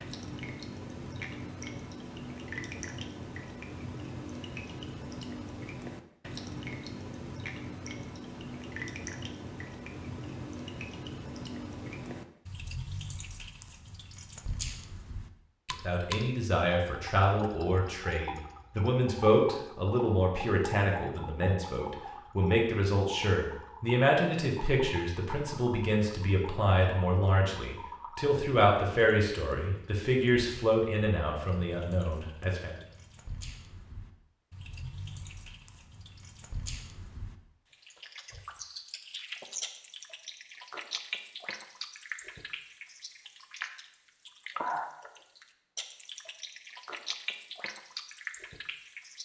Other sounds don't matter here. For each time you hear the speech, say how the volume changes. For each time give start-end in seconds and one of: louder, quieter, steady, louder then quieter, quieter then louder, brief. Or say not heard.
15.8-32.8 steady.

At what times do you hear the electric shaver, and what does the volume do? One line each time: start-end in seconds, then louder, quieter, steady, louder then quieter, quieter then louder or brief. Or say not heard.
not heard.